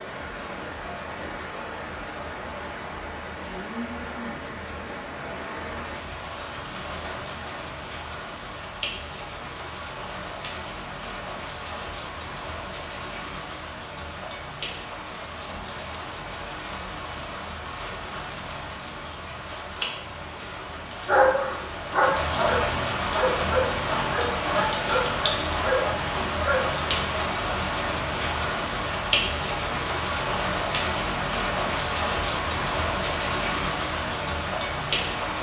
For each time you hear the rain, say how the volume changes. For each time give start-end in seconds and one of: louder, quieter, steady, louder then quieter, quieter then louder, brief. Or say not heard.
0.0-35.3 louder.